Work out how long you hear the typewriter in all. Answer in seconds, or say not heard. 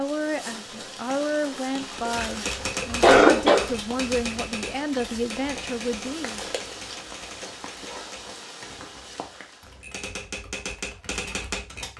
10 s.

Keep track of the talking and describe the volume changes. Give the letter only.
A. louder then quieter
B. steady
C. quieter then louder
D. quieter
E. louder
B.